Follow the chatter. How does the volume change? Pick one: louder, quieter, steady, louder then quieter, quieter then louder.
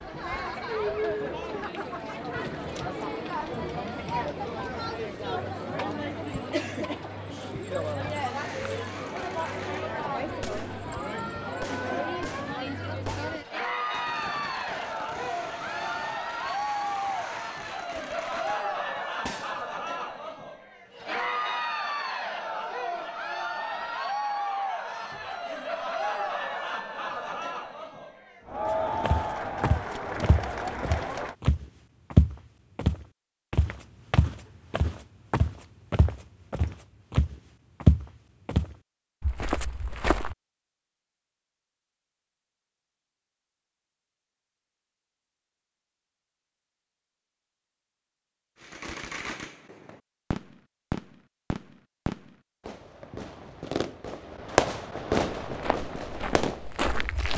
steady.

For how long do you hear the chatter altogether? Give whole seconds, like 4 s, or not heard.
31 s.